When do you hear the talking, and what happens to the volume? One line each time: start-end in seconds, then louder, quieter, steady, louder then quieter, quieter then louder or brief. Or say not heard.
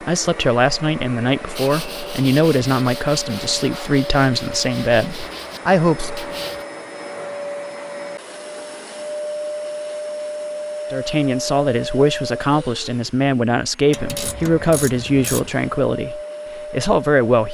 0.1-6.2 steady
10.9-17.4 steady.